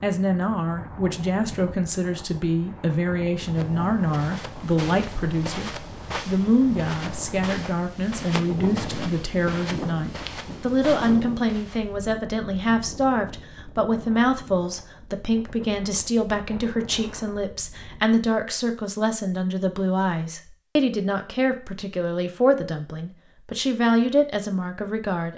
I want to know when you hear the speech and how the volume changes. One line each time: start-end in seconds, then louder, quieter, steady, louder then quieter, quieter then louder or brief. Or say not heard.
0.0-25.3 steady.